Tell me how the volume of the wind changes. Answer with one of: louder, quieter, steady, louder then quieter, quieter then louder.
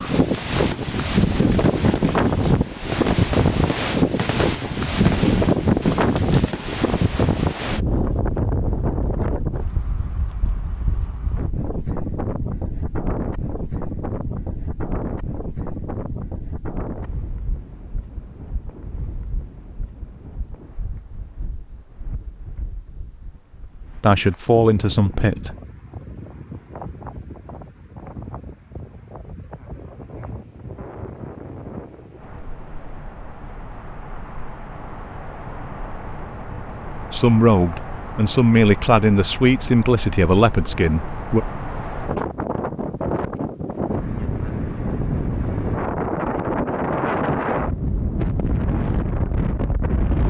quieter then louder.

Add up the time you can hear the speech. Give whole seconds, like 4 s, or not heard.
6 s.